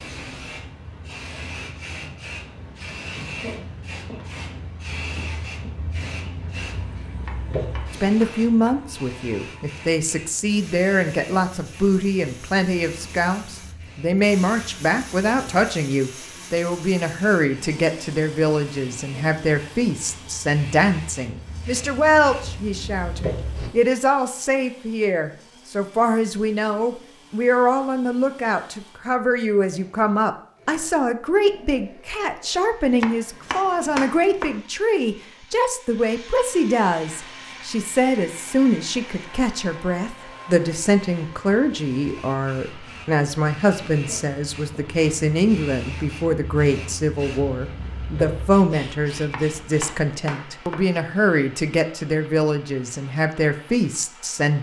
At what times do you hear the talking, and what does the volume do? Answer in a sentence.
You can hear the talking from 7.9 to 54.5 s, at a steady volume.